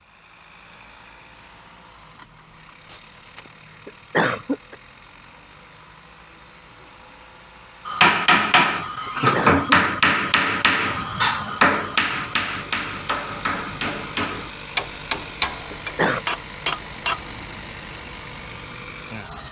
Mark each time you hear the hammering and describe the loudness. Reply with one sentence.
The hammering can be heard from 7.8 to 17.2 s, getting quieter.